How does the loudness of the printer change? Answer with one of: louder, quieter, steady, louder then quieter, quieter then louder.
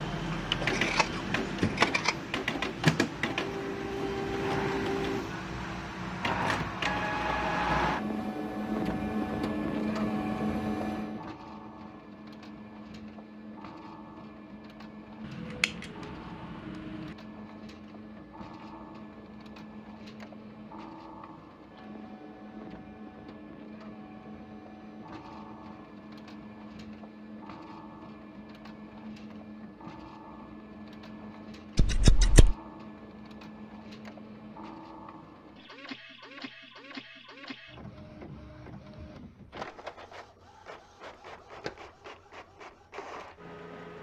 quieter.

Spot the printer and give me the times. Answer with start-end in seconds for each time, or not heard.
0.0-43.9.